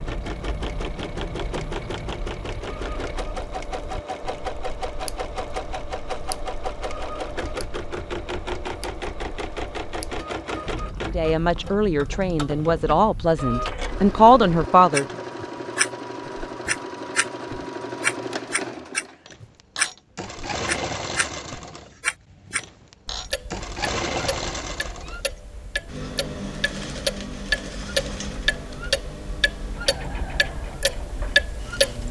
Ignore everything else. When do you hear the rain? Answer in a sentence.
You can't hear the rain here.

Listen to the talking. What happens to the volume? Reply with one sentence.
The loudness of the talking goes up.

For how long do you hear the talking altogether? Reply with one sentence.
You can hear the talking for 4 seconds altogether.